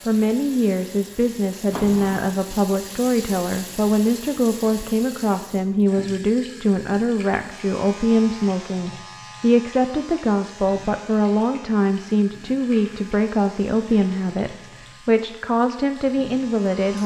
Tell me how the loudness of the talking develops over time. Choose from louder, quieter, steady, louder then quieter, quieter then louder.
steady.